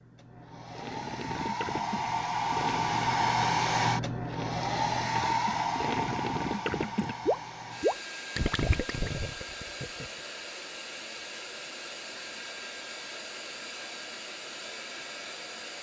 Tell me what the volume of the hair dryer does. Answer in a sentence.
The loudness of the hair dryer goes down.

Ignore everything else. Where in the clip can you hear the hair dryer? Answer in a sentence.
The hair dryer can be heard from 0.0 to 15.7 s.